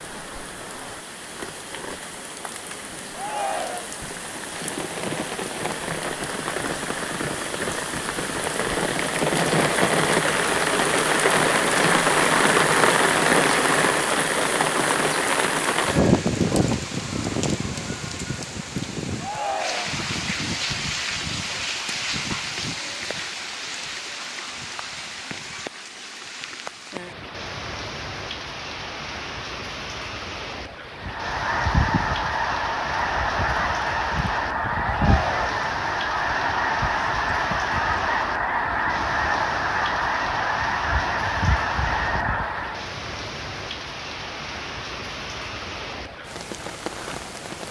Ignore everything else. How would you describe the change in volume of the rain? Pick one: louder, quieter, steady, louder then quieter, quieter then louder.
louder then quieter.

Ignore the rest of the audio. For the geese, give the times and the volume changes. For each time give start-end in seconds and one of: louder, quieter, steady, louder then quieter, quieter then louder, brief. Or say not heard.
30.9-42.9 steady.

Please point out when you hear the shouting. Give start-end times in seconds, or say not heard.
3.1-4.0, 19.2-19.9, 34.8-35.5.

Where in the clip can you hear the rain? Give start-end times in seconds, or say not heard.
0.0-47.6.